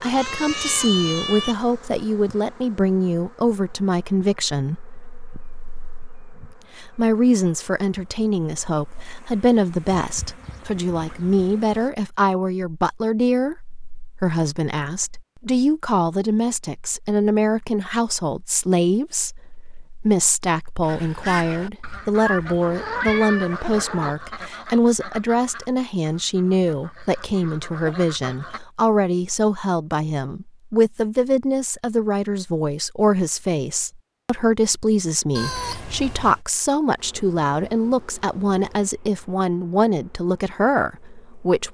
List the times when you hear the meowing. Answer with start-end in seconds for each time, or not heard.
0.0-1.6, 22.2-24.1, 35.4-36.4.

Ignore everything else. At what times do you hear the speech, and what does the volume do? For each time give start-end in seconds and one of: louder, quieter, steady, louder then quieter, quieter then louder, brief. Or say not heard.
0.0-41.7 steady.